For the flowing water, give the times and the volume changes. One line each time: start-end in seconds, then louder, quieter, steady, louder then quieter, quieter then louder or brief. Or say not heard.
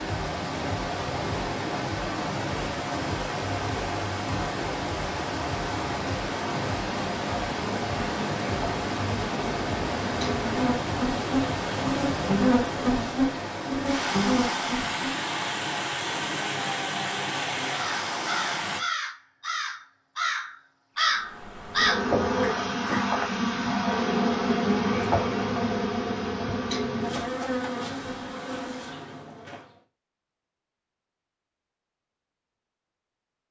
0.0-18.8 steady.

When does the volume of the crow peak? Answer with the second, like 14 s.
22 s.